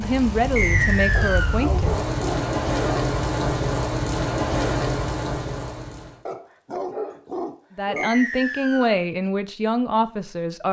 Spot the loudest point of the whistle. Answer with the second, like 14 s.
1 s.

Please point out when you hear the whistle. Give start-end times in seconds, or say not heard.
0.6-1.6, 8.0-8.9.